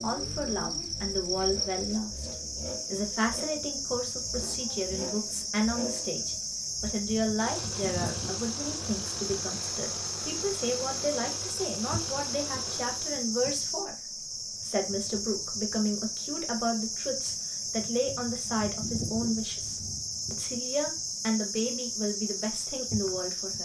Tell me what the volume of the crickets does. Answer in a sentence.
The volume of the crickets stays about the same.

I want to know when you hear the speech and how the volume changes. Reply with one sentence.
You can hear the speech from 0.0 to 23.5 s, at a steady volume.